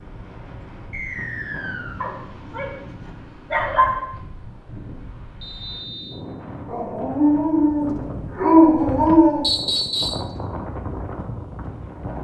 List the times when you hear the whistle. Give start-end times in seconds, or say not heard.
0.9-2.0, 5.4-6.2, 9.4-10.2.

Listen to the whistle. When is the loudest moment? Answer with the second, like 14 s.
10 s.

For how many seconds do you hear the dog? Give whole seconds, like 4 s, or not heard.
5 s.